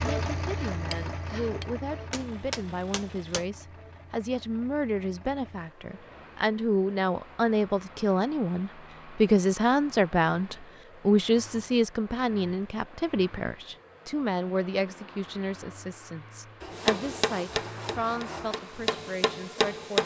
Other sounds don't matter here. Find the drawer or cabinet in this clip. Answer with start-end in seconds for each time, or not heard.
not heard.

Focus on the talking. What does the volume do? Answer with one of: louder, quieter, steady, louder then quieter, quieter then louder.
louder then quieter.